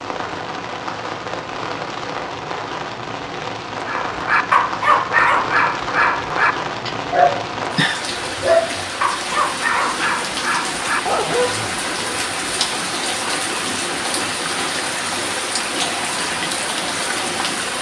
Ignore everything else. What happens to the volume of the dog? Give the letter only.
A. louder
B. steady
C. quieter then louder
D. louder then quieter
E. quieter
E.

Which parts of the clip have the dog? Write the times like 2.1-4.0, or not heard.
3.9-12.2.